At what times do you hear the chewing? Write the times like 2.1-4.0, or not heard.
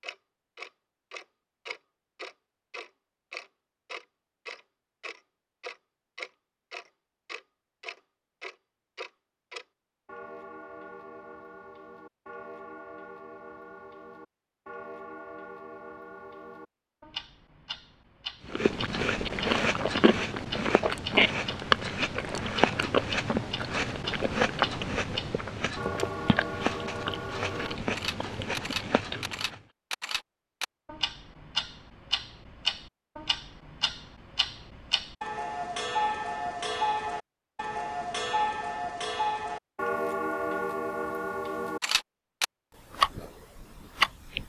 18.4-29.6.